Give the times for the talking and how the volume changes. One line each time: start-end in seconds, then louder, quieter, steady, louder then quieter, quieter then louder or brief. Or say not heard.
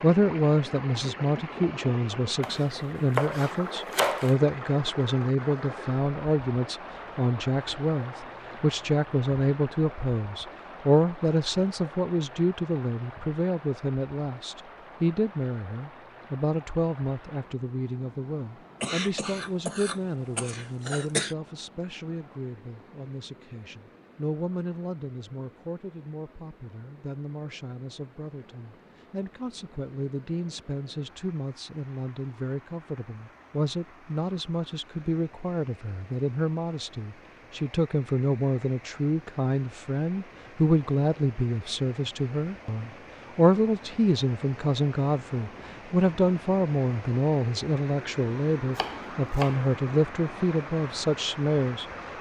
0.0-51.9 quieter then louder.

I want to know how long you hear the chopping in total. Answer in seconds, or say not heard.
3 s.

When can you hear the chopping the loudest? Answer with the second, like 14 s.
4 s.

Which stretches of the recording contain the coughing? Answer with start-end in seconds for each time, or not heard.
18.8-21.4.